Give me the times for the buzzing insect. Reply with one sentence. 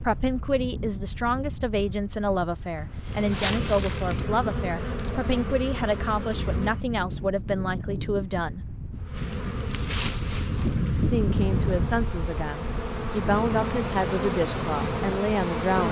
You can hear the buzzing insect from 3.0 to 6.8 s and from 9.0 to 15.8 s.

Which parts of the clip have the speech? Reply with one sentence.
You can hear the speech from 0.0 to 8.8 s and from 11.1 to 15.8 s.